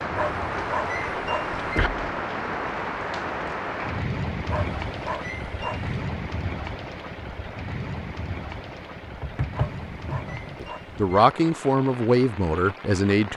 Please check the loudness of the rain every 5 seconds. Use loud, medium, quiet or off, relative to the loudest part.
loud, medium, medium.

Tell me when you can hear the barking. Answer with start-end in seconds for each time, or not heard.
0.1-1.9, 4.5-5.9, 9.5-11.2.